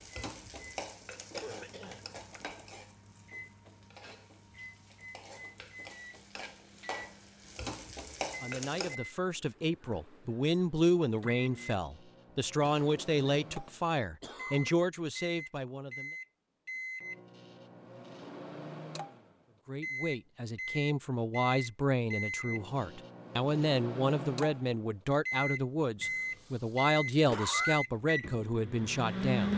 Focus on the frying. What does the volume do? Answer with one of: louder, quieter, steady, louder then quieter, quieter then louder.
quieter then louder.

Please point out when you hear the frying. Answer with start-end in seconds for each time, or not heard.
0.0-8.9.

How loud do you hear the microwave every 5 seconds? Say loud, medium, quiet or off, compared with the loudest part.
quiet, quiet, quiet, medium, medium, loud.